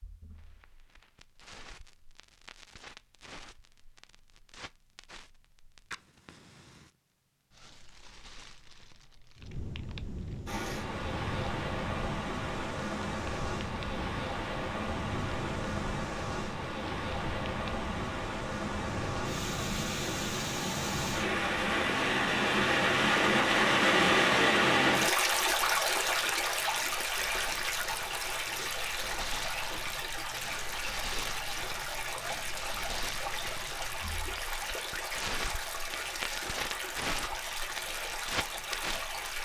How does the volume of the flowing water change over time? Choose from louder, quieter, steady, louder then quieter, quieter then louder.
louder then quieter.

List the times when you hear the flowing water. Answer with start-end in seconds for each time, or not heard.
10.4-39.3.